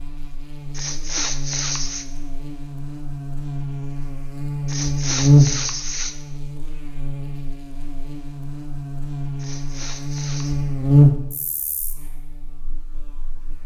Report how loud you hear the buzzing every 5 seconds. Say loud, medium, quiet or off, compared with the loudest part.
medium, loud, loud.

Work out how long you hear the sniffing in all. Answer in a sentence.
The sniffing can be heard for 4 seconds in total.